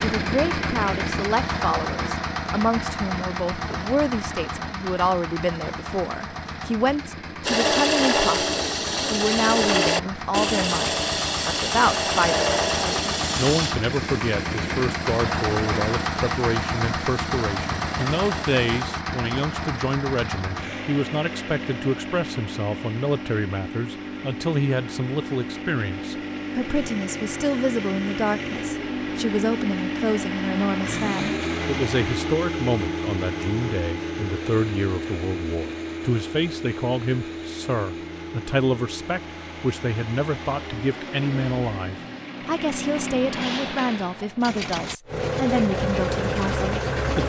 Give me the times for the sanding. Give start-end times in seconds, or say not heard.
7.5-18.9.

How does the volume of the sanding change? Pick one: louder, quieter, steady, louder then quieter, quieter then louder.
quieter.